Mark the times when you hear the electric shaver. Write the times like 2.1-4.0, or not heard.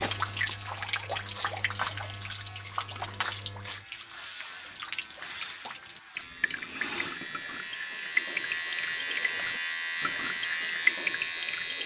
0.0-11.8.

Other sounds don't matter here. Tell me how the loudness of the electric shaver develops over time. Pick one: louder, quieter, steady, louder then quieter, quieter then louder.
louder.